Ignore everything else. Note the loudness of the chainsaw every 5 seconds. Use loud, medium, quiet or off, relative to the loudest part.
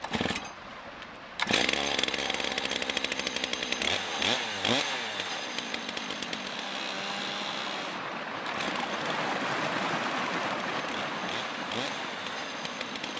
loud, medium, medium.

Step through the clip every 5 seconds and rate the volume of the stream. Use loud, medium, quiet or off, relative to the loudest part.
medium, loud, loud.